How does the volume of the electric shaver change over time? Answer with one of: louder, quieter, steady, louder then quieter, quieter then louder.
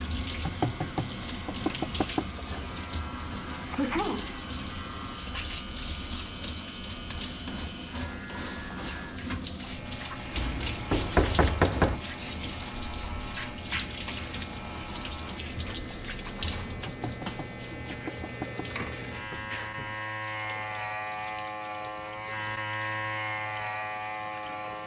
louder.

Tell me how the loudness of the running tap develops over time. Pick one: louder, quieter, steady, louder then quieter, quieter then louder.
quieter.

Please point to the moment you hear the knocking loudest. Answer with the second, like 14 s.
12 s.